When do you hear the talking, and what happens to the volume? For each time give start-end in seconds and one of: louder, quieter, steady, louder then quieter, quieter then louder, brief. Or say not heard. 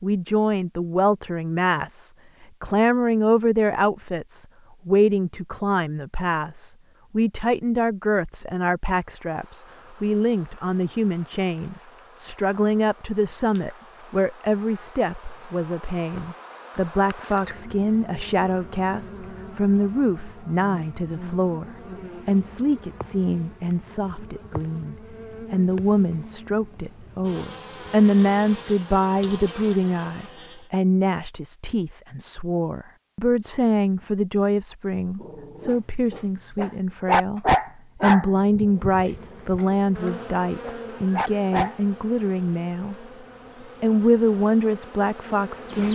0.0-43.0 steady
43.8-45.9 brief.